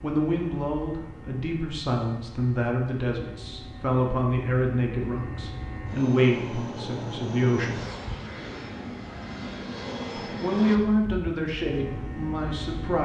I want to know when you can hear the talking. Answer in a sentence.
You can hear the talking from 0.0 to 7.8 s and from 10.4 to 13.0 s.